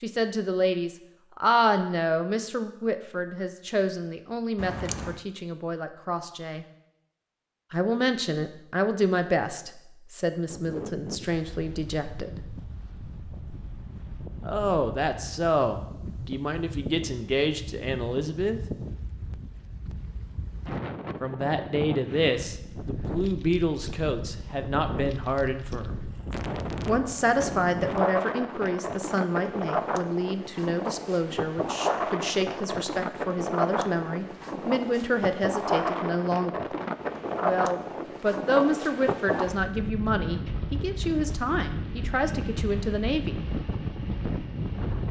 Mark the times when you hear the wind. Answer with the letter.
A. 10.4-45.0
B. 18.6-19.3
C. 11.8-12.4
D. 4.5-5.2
A.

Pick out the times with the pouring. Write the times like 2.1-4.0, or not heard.
4.5-5.2.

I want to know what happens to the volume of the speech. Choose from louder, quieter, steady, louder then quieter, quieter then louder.
steady.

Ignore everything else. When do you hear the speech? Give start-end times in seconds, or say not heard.
0.0-6.7, 7.7-12.4, 14.4-18.6, 21.2-25.9, 26.9-36.5, 37.4-43.4.